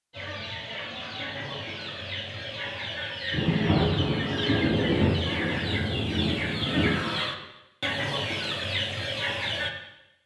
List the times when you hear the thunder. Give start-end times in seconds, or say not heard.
3.3-7.0.